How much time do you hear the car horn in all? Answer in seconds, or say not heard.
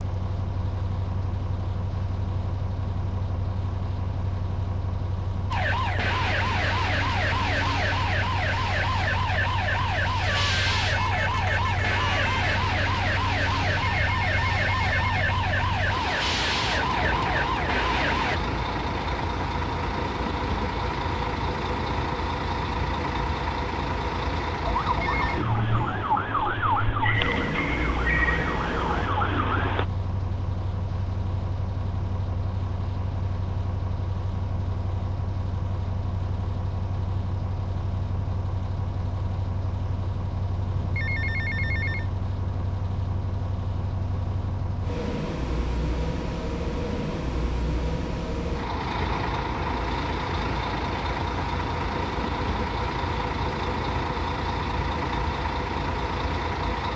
2 s.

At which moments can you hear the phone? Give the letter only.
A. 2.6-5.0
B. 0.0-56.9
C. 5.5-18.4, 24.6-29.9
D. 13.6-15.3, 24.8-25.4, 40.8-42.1
D.